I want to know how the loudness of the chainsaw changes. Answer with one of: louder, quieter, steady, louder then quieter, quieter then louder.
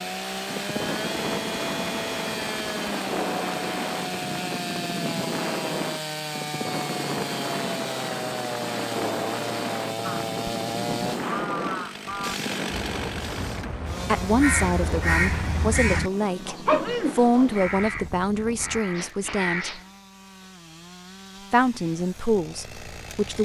quieter.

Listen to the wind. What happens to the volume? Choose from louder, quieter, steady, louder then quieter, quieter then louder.
quieter.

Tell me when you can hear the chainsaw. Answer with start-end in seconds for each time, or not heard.
0.0-23.4.